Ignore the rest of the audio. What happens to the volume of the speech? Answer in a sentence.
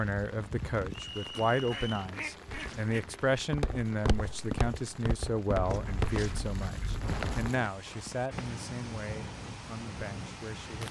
The volume of the speech goes down.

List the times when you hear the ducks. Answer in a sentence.
You can hear the ducks from 1.1 to 3.0 s and from 5.7 to 7.2 s.